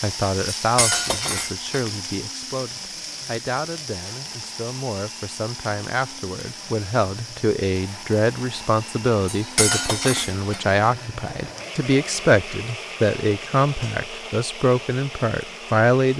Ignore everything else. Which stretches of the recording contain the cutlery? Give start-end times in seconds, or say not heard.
0.6-1.8, 9.3-10.6.